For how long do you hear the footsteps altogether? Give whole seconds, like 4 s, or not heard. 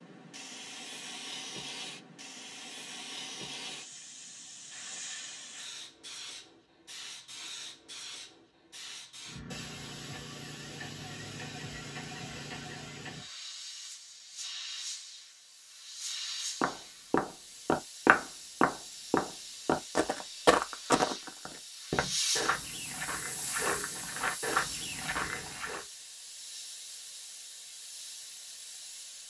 9 s.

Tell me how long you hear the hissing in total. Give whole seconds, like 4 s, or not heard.
29 s.